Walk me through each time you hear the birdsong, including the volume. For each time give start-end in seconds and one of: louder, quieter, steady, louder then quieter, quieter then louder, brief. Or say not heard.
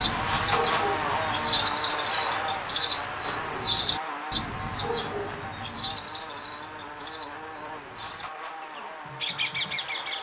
0.0-10.1 quieter.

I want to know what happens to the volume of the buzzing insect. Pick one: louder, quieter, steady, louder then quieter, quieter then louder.
quieter.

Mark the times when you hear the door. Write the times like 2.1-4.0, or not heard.
not heard.